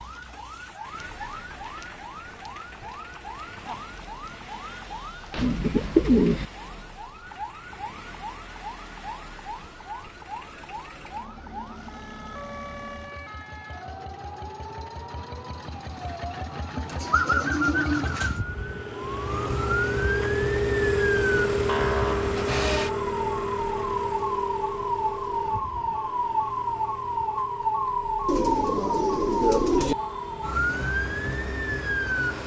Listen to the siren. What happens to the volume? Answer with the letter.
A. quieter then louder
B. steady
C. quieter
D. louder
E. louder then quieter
D.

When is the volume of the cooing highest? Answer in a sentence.
The volume of the cooing peaks at 6 seconds.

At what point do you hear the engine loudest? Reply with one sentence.
The volume of the engine peaks at 21 seconds.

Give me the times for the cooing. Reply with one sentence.
The cooing can be heard from 5.3 to 6.5 s, from 16.8 to 18.4 s and from 28.2 to 29.9 s.